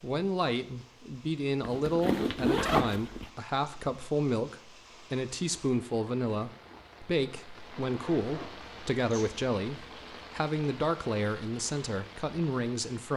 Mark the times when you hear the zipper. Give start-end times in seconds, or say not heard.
1.6-3.3, 6.7-9.3.